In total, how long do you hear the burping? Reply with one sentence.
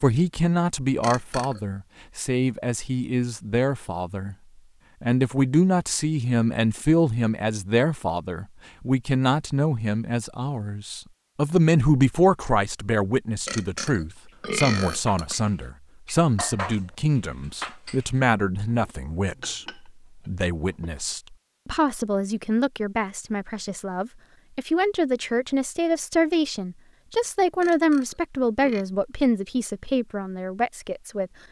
You can hear the burping for 4 seconds altogether.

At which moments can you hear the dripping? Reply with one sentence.
The dripping can't be heard in this clip.